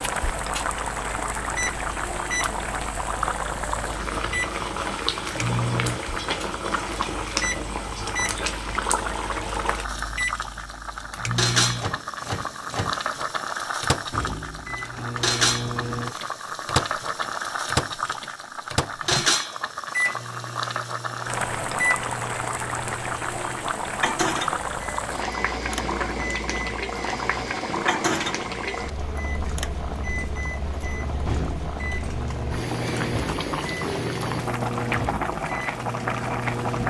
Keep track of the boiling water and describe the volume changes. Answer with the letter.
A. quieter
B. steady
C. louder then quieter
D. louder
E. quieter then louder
B.